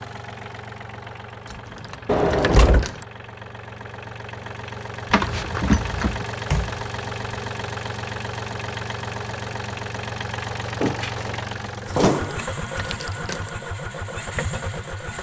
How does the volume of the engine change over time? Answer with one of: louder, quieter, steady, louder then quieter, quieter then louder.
louder.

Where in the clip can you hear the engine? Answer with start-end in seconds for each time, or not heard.
0.0-15.1.